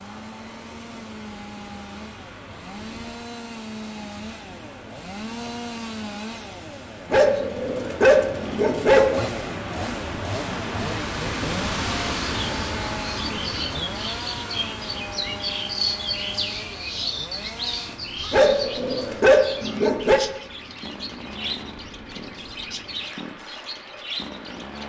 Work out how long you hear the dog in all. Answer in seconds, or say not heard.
4 s.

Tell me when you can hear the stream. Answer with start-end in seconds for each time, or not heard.
0.0-24.8.